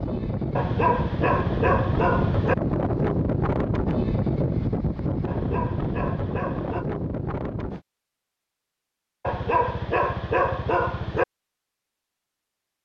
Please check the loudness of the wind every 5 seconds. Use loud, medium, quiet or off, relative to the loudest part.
loud, loud, off.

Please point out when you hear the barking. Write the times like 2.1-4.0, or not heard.
0.6-2.5, 5.2-6.8, 9.2-11.2.